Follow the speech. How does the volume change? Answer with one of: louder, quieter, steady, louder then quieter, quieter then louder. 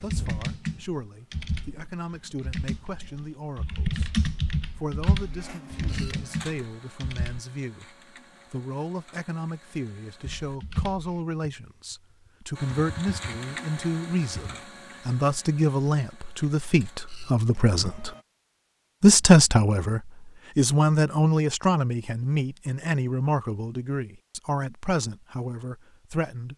louder then quieter.